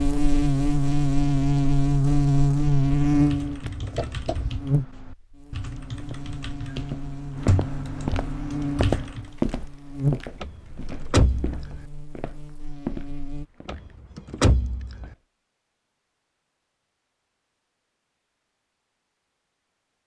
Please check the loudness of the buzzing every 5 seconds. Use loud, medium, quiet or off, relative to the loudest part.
loud, quiet, medium, off.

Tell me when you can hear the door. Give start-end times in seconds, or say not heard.
3.6-4.7, 10.4-11.8, 13.7-15.1.